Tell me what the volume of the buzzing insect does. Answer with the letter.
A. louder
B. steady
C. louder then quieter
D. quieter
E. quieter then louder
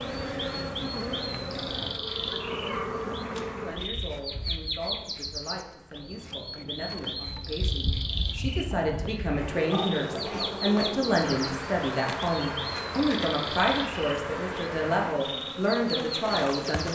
E.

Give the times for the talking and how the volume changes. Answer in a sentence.
You can hear the talking from 3.6 to 16.9 s, getting louder.